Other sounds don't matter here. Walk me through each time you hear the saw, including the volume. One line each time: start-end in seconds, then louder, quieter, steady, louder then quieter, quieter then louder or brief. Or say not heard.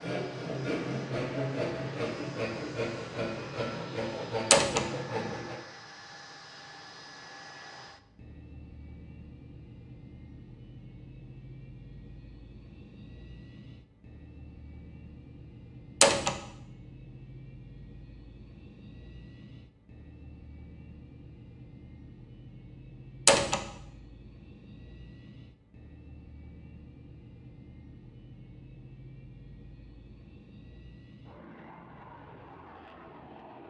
0.0-5.5 steady.